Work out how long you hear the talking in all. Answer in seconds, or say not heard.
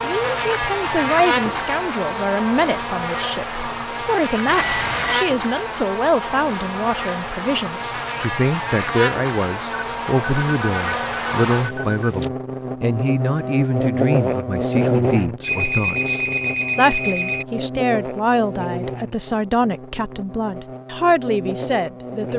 22 s.